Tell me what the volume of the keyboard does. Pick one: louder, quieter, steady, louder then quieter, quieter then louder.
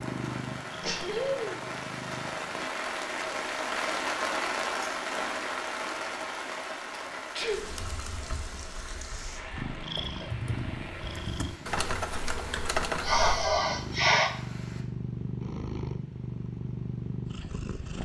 louder.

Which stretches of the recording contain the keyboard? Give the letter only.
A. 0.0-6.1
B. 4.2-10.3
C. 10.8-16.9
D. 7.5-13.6
D.